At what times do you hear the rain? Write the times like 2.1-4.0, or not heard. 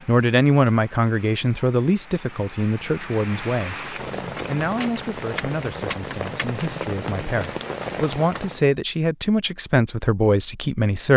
0.0-8.7.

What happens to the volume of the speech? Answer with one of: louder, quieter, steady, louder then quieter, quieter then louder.
quieter then louder.